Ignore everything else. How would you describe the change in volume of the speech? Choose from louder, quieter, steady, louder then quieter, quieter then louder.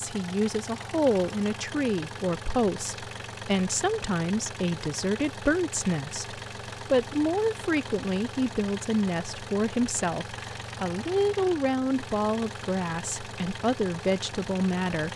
steady.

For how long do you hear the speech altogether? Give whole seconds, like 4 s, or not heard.
15 s.